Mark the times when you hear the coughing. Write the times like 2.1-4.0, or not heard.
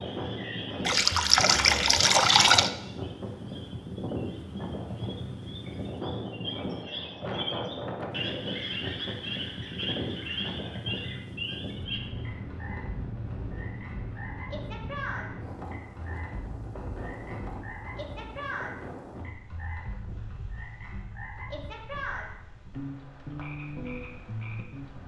not heard.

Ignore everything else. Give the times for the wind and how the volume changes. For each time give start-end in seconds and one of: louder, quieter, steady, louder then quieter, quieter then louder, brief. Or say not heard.
0.0-25.0 quieter.